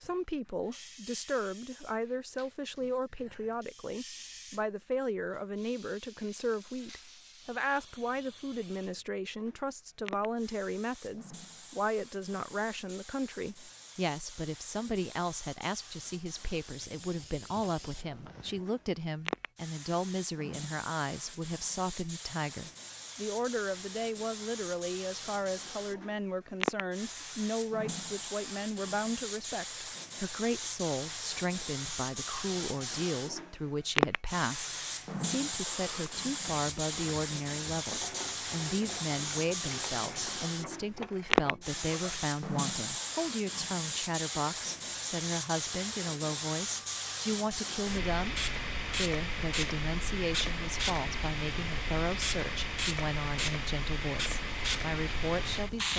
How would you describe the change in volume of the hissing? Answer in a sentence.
The loudness of the hissing goes up.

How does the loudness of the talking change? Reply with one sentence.
The loudness of the talking stays about the same.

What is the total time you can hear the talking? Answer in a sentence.
The talking can be heard for 56 seconds in total.